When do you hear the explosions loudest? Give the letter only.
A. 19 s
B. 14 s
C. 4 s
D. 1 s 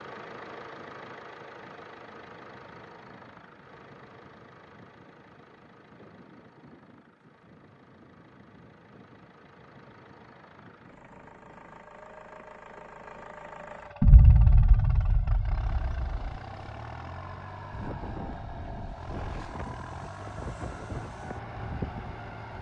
B.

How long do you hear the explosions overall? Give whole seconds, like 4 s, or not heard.
2 s.